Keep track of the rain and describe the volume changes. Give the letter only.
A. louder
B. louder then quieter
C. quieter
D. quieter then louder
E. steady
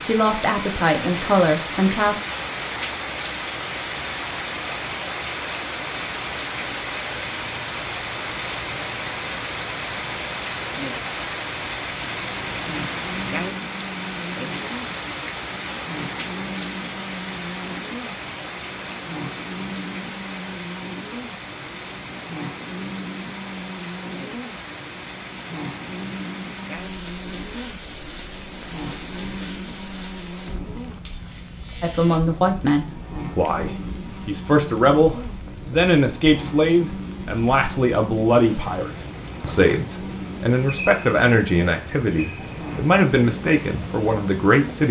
C.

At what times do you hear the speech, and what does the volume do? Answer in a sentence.
The speech can be heard briefly from 0.0 to 2.2 s; and from 31.8 to 44.8 s, at a steady volume.